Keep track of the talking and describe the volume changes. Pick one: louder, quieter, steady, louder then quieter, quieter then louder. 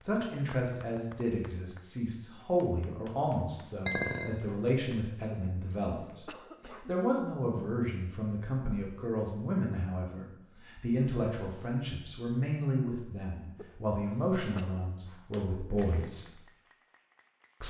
steady.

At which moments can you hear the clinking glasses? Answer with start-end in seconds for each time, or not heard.
3.9-4.5.